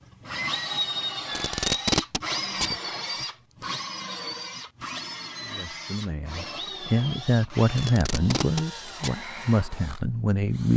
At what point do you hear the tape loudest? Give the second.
2 s.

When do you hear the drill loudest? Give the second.
1 s.